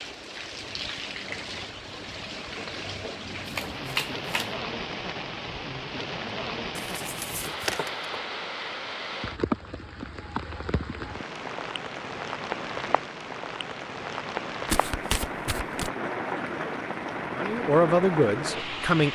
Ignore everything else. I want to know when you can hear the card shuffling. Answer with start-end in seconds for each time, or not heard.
3.5-4.5, 6.8-7.9, 14.7-15.9.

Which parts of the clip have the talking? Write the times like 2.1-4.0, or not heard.
17.4-19.1.